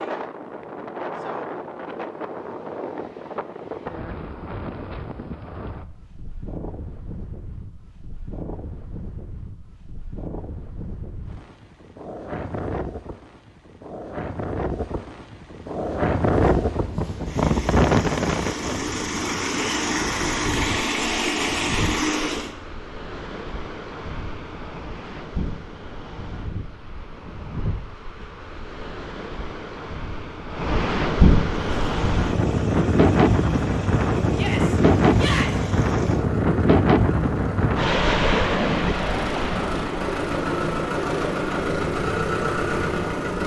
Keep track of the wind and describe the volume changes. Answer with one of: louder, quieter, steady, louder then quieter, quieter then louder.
louder.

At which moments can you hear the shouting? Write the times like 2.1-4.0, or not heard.
34.3-35.6.